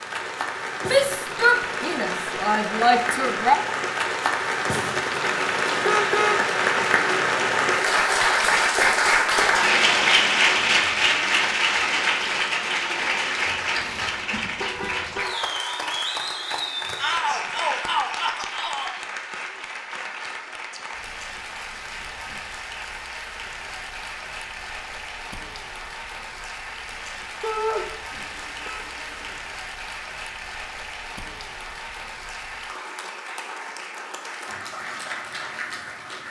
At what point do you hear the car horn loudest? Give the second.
6 s.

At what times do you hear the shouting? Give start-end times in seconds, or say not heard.
0.8-3.5, 16.9-18.9, 27.4-27.9.